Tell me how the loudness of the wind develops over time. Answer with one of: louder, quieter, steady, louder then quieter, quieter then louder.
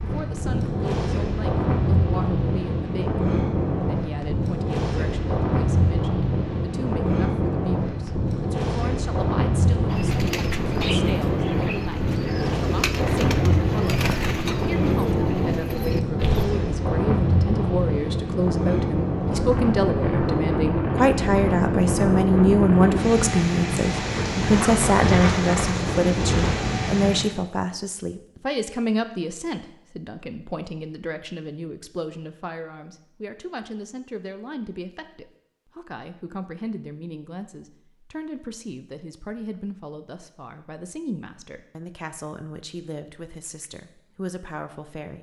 steady.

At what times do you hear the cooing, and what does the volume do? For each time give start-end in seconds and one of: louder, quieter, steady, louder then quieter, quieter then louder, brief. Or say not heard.
9.8-16.4 steady.